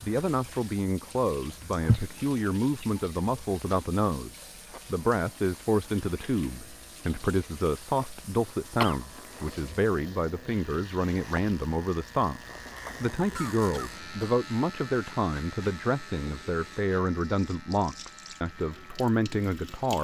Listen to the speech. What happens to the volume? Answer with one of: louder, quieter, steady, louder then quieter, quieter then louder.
steady.